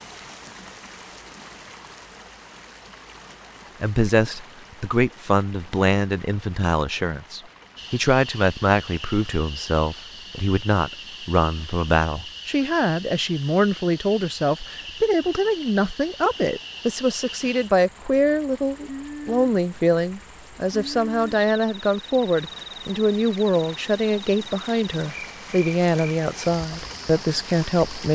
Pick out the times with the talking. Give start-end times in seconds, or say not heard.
3.8-28.1.